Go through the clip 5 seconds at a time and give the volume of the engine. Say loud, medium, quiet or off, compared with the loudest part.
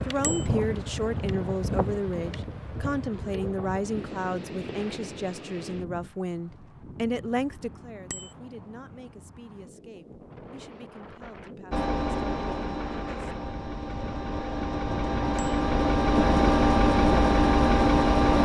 off, off, medium, loud.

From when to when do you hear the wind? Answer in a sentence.
You can hear the wind from 0.0 to 18.1 s.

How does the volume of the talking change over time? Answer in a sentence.
The loudness of the talking goes down.